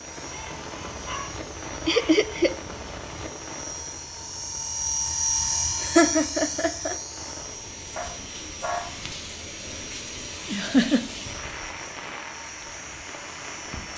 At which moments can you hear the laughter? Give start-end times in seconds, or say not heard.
1.9-2.5, 5.8-7.0, 10.5-11.1.